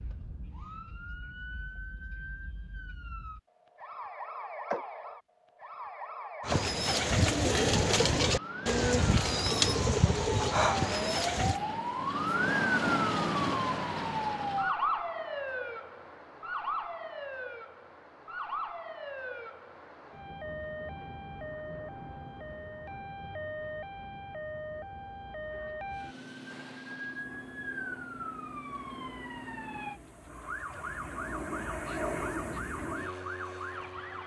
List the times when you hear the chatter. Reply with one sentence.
The chatter can't be heard in this clip.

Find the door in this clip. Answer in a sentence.
The door can't be heard in this clip.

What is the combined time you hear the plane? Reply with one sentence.
You can hear the plane for 8 seconds altogether.